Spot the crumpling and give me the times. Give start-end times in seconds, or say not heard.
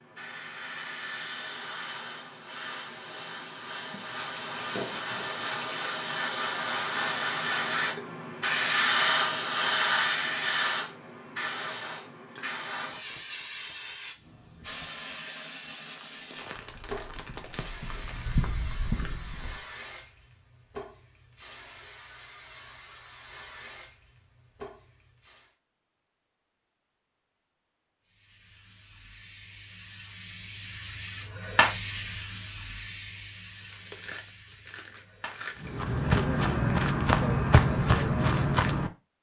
3.9-5.8, 15.9-18.4, 33.5-35.7.